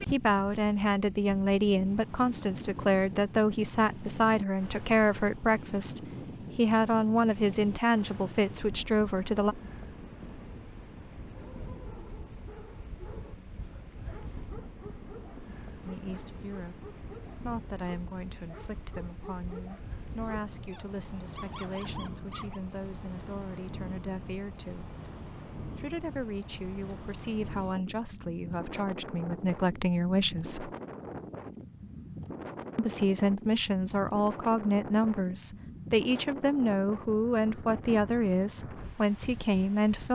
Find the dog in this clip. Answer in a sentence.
You can hear the dog from 11.3 to 22.6 s.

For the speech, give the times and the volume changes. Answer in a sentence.
The speech can be heard from 0.1 to 9.6 s, at a steady volume; from 15.8 to 24.9 s, at a steady volume; from 25.8 to 30.7 s, getting louder; and from 32.8 to 40.0 s, at a steady volume.